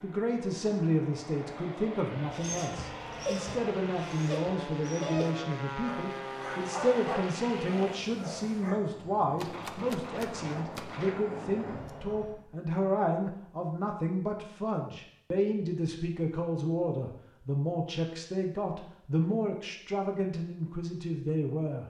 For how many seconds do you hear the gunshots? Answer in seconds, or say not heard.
3 s.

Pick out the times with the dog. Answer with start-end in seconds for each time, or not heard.
2.2-8.8.